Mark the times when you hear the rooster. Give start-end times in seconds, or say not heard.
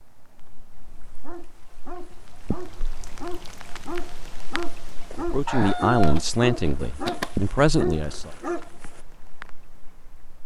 5.5-7.4.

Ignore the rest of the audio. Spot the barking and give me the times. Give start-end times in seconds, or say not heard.
1.0-9.0.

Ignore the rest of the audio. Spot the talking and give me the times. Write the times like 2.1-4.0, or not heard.
5.2-8.3.